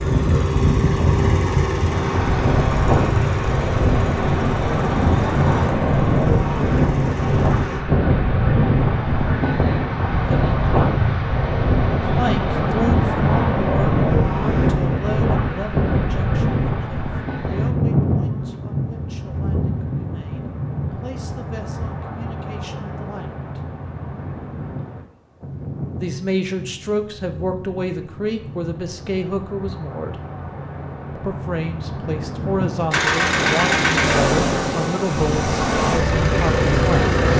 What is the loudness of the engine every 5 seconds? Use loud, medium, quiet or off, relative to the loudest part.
medium, quiet, off, off, off, off, loud, loud.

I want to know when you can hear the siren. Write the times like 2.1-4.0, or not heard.
not heard.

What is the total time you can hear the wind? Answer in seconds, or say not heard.
37 s.